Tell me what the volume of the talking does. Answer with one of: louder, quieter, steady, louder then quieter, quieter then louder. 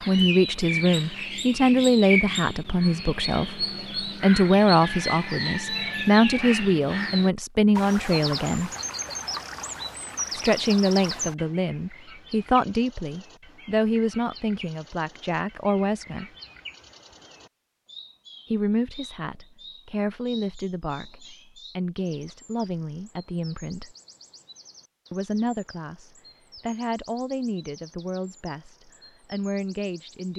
quieter.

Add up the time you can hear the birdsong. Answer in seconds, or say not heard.
30 s.